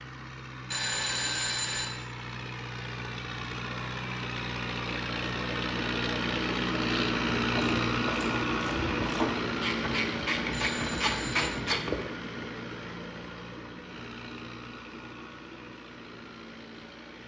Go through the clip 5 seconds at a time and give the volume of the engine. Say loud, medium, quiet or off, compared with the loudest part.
medium, loud, medium, quiet.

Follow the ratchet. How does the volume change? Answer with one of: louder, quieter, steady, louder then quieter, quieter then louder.
louder.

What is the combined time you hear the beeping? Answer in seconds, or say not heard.
2 s.